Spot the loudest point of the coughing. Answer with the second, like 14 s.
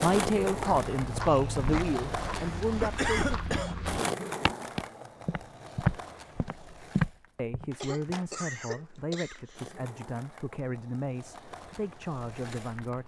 3 s.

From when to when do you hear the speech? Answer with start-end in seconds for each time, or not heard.
0.0-3.4, 7.3-13.0.